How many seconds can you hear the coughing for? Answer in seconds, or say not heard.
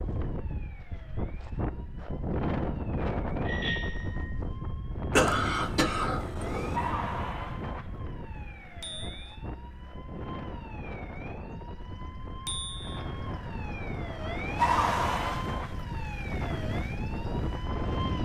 2 s.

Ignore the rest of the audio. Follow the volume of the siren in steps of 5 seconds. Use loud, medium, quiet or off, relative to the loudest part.
quiet, medium, loud, loud.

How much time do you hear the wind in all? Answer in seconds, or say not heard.
18 s.